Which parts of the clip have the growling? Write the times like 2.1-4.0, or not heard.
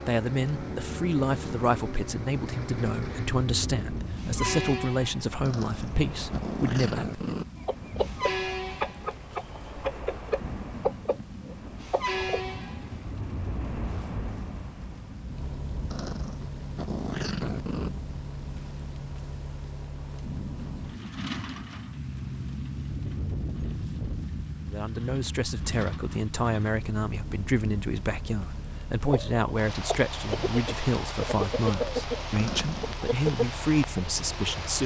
5.4-7.5, 15.9-17.9, 32.4-33.0.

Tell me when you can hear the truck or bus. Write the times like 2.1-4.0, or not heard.
0.0-34.8.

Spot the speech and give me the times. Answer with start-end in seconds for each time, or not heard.
0.1-7.2, 24.6-34.8.